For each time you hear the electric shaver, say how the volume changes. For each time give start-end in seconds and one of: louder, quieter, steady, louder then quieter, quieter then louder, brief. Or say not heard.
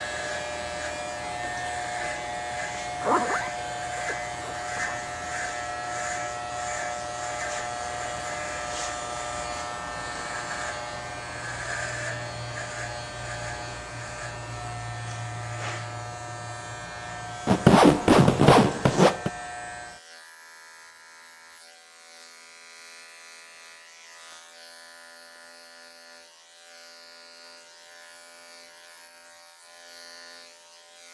0.0-31.0 quieter.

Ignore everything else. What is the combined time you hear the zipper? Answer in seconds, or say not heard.
4 s.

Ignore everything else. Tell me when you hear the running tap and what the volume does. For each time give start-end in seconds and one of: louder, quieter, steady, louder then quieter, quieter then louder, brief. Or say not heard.
not heard.